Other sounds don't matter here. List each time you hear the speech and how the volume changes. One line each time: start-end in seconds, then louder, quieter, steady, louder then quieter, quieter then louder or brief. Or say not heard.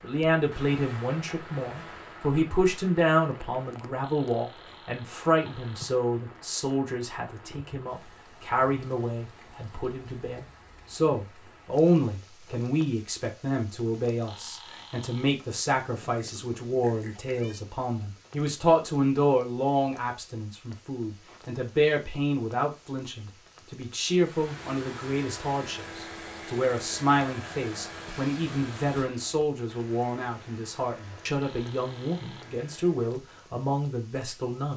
0.0-34.7 steady.